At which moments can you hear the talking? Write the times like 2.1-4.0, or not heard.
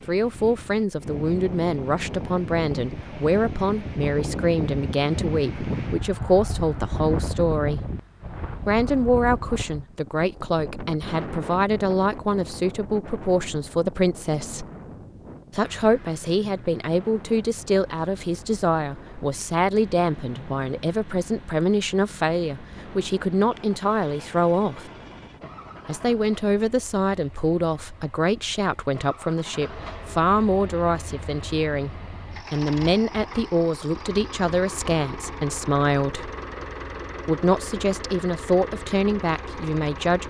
0.1-7.9, 8.7-14.7, 15.5-24.9, 25.9-36.3, 37.2-40.2.